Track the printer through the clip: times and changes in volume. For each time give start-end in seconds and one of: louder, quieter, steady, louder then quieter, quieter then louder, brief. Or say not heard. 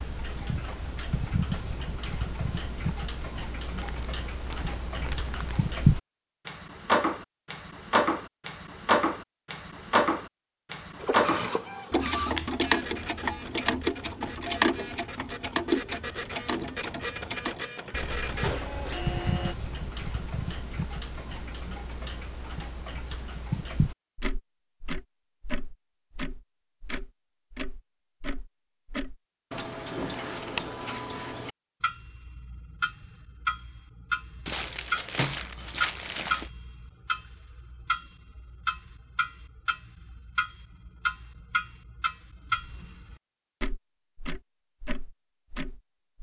10.9-19.6 quieter then louder.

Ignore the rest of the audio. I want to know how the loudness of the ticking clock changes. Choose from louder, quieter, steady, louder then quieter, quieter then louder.
quieter.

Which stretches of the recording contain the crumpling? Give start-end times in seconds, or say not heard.
3.8-5.7, 34.5-36.5.